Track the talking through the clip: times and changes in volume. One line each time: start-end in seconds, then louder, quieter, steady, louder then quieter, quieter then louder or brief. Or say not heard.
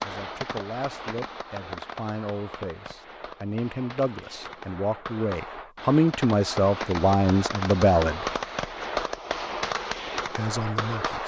0.0-8.3 louder
10.2-11.2 brief.